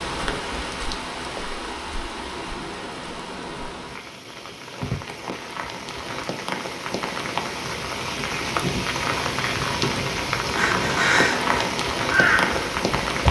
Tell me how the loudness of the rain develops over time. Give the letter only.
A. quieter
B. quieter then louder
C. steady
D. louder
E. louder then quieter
D.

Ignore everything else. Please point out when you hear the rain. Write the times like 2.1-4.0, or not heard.
0.0-13.2.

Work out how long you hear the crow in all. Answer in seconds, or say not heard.
3 s.